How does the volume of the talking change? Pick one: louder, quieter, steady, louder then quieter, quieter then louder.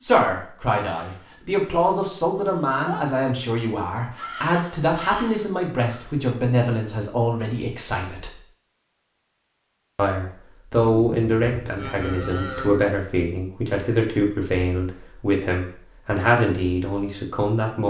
steady.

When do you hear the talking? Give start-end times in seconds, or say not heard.
0.0-8.3, 9.9-17.8.